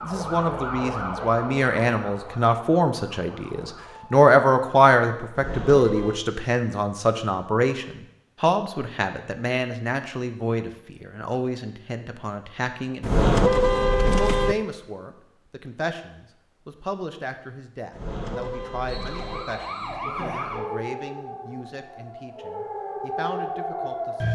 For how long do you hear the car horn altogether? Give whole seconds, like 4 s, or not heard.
4 s.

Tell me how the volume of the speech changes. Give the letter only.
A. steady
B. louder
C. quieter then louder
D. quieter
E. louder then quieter
D.